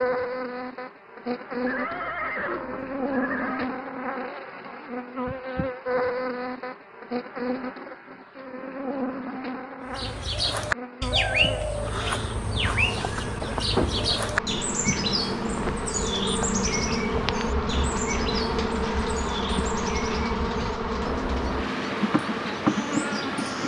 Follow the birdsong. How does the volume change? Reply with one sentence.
The loudness of the birdsong goes down.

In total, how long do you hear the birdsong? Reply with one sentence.
You can hear the birdsong for 14 seconds altogether.